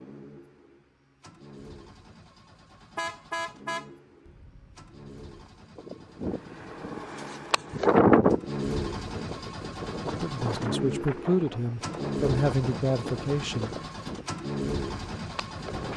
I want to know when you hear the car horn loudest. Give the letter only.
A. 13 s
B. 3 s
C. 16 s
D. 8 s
B.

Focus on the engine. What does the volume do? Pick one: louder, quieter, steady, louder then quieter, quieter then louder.
louder.